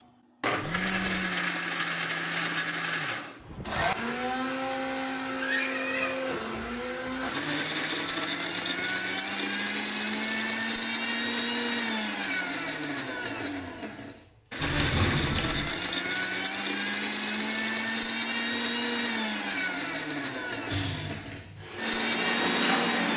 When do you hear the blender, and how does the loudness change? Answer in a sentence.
The blender can be heard from 0.0 to 23.1 s, at a steady volume.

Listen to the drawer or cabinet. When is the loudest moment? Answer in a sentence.
The volume of the drawer or cabinet peaks at 15 seconds.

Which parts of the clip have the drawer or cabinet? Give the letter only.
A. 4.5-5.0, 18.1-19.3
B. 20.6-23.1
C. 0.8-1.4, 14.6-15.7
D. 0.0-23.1
C.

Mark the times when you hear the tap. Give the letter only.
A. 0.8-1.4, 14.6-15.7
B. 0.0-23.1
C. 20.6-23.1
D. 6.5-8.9
C.